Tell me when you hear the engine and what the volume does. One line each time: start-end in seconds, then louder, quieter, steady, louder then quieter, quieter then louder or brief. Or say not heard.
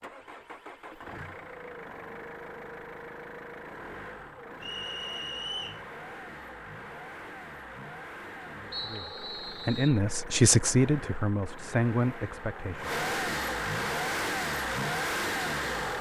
0.0-15.9 louder.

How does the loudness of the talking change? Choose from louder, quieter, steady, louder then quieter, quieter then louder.
louder then quieter.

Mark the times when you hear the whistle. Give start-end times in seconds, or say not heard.
4.6-5.8, 8.7-10.0.